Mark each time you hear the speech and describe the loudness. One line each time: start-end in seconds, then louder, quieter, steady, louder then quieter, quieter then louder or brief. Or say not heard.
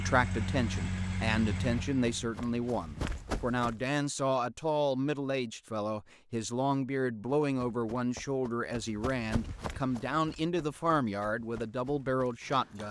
0.0-12.8 steady.